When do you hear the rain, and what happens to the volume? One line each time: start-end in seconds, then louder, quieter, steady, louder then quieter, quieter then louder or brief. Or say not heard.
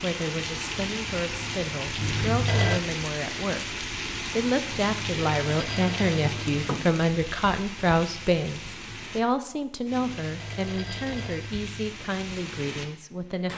0.0-13.5 quieter.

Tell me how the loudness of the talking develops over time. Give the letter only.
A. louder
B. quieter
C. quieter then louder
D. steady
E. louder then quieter
E.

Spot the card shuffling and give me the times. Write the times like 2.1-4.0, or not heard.
6.2-7.0.